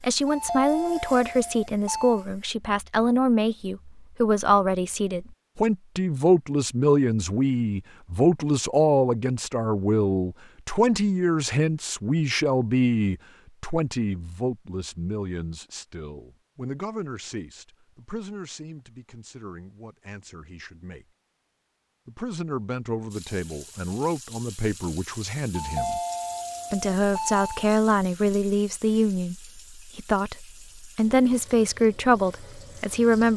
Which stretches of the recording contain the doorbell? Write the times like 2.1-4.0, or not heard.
0.2-2.2, 25.6-27.7.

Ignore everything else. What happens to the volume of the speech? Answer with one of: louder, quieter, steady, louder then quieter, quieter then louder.
quieter then louder.